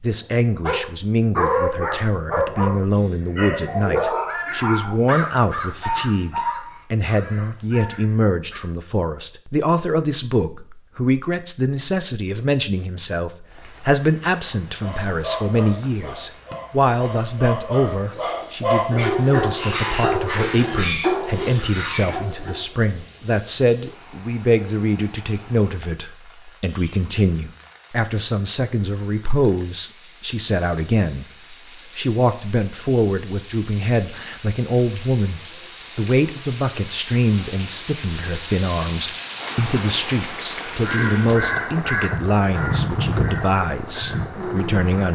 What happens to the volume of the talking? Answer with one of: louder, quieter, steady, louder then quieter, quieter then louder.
steady.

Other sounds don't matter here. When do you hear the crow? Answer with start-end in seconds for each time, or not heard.
2.4-8.7, 40.6-45.1.